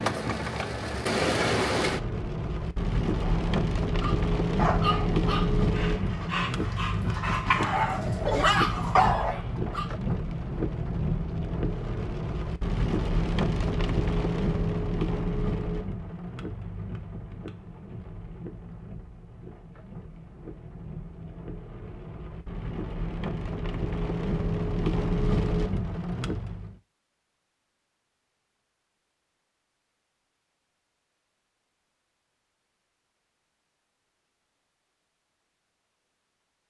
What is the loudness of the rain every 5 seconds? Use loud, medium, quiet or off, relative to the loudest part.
loud, loud, loud, medium, medium, loud, off, off.